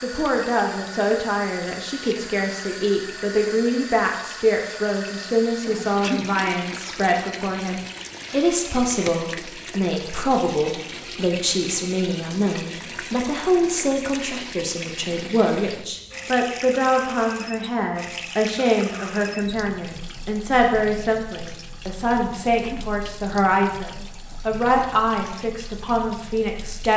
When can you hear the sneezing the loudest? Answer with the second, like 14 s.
6 s.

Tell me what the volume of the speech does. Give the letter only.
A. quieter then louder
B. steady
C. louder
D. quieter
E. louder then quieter
B.